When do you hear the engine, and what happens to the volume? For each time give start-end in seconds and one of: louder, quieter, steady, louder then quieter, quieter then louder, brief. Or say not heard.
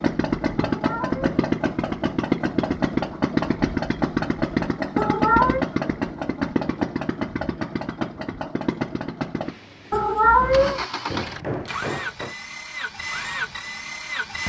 0.0-14.4 quieter.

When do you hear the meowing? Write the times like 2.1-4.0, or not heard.
0.6-1.2, 5.0-5.7, 9.9-10.8.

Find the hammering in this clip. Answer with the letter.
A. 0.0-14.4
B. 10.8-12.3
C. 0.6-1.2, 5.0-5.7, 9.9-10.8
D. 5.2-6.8
B.